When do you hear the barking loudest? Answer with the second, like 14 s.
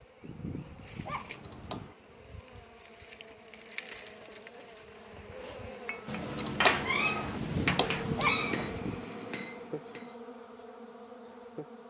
8 s.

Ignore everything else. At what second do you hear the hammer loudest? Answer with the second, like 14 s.
7 s.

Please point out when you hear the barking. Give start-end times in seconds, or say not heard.
0.2-1.9, 7.3-9.1.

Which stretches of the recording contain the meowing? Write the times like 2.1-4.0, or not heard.
1.1-1.9, 6.0-8.8.